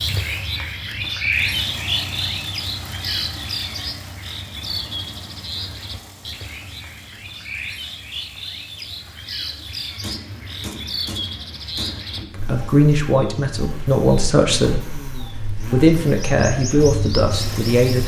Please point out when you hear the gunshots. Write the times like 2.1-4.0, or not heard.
10.0-12.0.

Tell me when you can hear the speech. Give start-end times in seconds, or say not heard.
12.2-15.1, 15.7-18.0.